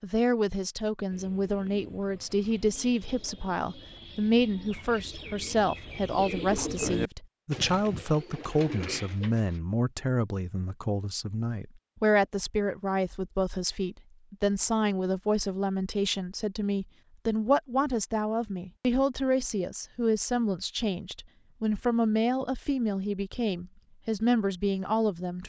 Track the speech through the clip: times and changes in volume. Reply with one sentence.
The speech can be heard from 0.0 to 25.4 s, at a steady volume.